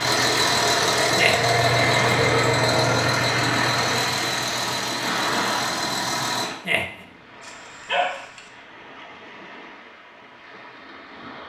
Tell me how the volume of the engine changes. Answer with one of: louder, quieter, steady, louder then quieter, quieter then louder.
quieter.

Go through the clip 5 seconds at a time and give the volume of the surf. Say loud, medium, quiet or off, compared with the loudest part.
loud, medium, quiet.